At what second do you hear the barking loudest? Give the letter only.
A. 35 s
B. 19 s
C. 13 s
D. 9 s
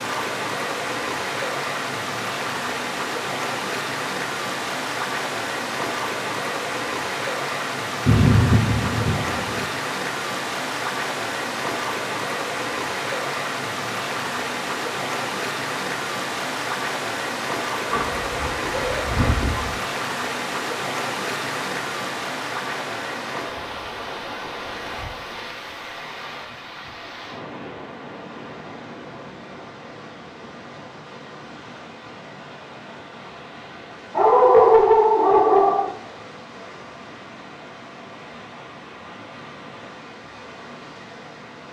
A.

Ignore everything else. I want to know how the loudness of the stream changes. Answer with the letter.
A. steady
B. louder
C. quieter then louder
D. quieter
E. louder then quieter
D.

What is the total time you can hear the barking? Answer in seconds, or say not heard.
5 s.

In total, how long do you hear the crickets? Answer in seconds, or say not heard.
not heard.